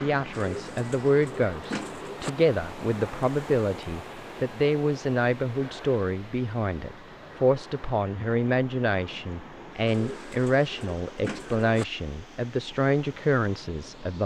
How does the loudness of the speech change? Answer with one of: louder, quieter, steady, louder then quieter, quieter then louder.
steady.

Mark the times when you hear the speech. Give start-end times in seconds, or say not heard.
0.0-14.2.